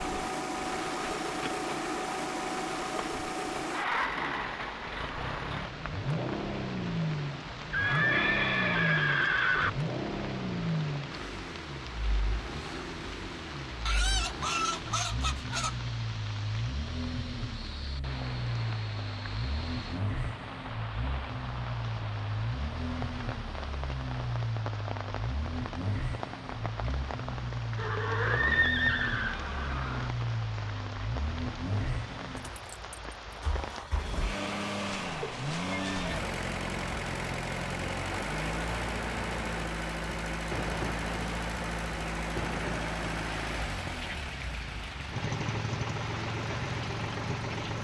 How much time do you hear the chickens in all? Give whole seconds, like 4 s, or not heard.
2 s.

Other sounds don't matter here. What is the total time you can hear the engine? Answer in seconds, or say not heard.
48 s.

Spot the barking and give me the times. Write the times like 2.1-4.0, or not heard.
not heard.